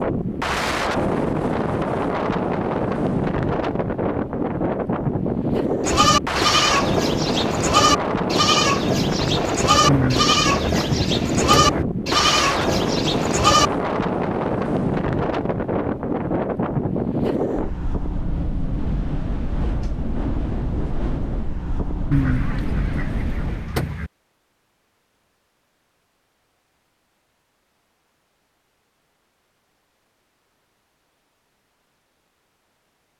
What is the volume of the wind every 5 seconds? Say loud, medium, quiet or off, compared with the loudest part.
loud, loud, loud, loud, medium, off, off.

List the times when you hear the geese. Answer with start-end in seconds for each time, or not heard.
9.8-11.8, 22.1-24.1.